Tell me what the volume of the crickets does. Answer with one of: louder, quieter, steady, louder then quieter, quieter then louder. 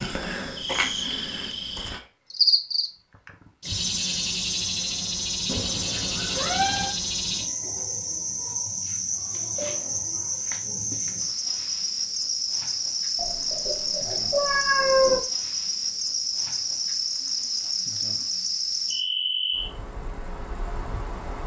steady.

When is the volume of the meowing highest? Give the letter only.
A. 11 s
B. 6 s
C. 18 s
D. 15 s
D.